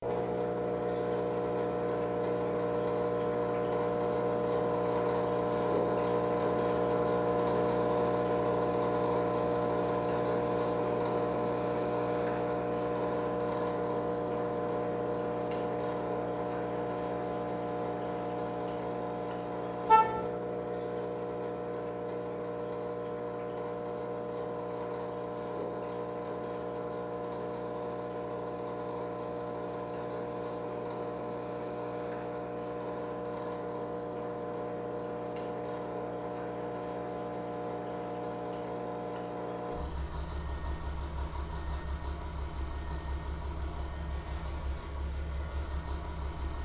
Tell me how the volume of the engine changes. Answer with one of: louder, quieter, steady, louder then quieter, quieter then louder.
quieter.